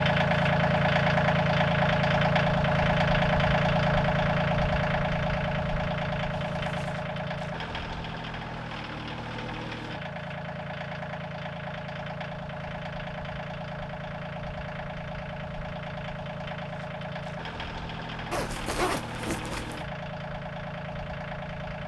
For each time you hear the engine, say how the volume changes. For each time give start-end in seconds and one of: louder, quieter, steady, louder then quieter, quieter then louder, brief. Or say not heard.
0.0-21.8 quieter.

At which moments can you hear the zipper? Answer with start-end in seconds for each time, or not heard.
6.3-7.0, 18.3-19.9.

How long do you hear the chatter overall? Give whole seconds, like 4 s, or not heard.
not heard.